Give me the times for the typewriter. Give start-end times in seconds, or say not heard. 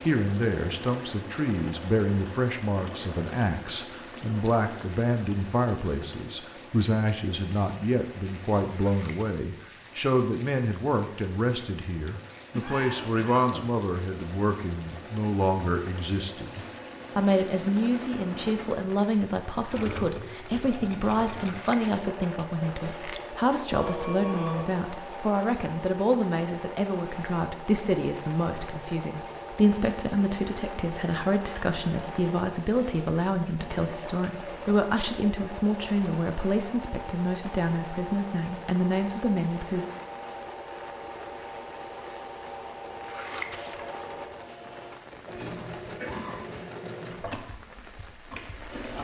not heard.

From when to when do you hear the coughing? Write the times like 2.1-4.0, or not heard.
12.5-13.8, 23.7-24.8, 45.4-46.6.